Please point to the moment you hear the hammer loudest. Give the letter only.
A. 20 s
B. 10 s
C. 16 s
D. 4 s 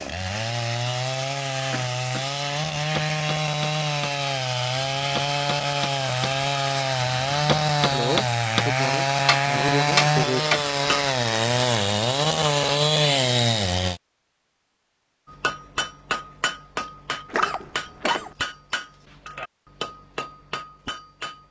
B.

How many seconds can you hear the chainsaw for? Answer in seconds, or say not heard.
14 s.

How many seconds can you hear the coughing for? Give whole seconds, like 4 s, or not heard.
4 s.